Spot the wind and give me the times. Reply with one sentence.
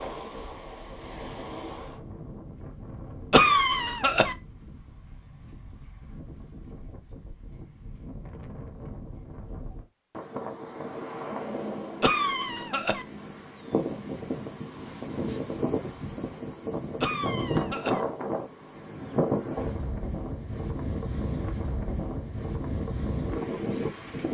The wind can be heard from 0.0 to 24.2 s.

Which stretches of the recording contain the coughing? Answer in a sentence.
You can hear the coughing from 3.3 to 4.3 s, from 12.0 to 13.1 s and from 17.0 to 18.0 s.